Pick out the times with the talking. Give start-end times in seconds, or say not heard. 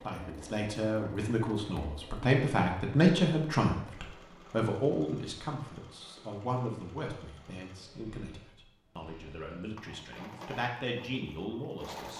0.0-12.1.